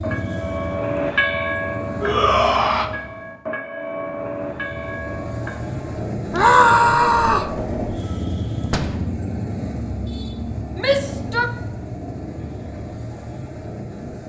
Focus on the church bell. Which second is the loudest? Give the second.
1 s.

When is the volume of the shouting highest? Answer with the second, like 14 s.
7 s.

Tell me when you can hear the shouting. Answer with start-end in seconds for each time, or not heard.
2.0-2.9, 6.3-7.5, 10.8-11.5.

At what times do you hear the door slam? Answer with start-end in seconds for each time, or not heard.
8.7-9.2.